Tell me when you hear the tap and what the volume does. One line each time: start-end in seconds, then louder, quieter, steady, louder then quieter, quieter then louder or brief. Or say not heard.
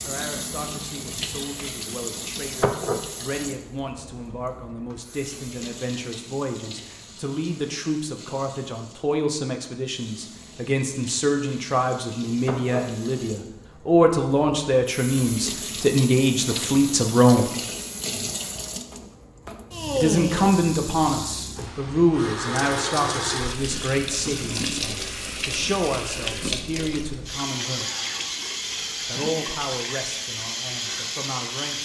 0.0-31.8 quieter then louder.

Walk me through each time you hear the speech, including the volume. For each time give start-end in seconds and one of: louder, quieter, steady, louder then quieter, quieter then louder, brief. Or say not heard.
0.1-17.5 louder
19.9-27.9 quieter
29.1-31.8 brief.